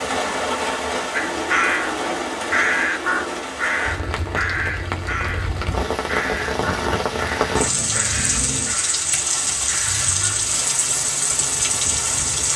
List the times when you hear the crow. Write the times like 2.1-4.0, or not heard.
1.1-10.6.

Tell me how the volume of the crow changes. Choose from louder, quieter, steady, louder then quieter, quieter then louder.
quieter.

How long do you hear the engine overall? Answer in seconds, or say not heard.
6 s.